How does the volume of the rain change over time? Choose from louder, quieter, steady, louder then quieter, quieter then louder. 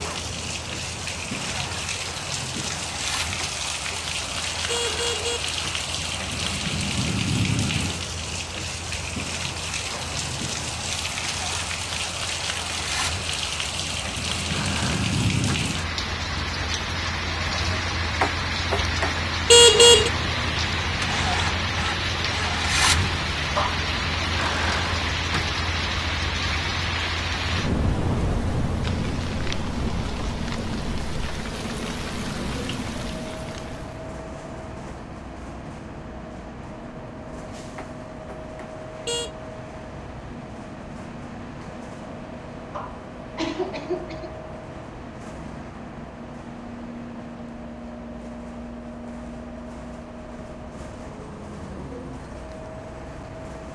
steady.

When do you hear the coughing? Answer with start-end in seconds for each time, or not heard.
23.6-24.2, 42.7-44.3.